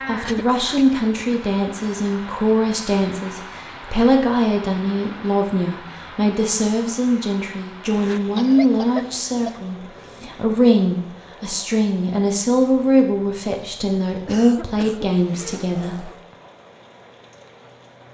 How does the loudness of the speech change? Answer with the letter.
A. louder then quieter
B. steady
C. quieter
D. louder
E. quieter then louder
B.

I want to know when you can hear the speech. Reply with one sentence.
The speech can be heard from 0.1 to 16.1 s.